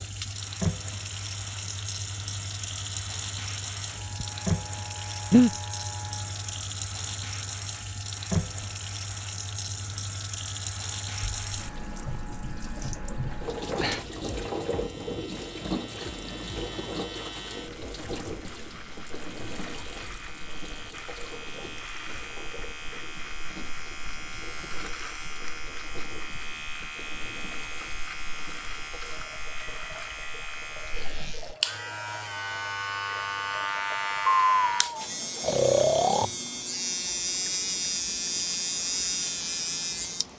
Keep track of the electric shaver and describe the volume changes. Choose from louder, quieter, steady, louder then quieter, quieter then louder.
louder.